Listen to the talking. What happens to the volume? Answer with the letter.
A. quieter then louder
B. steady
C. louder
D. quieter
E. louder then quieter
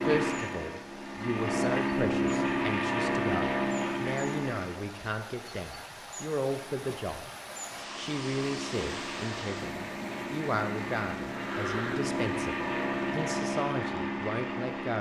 B.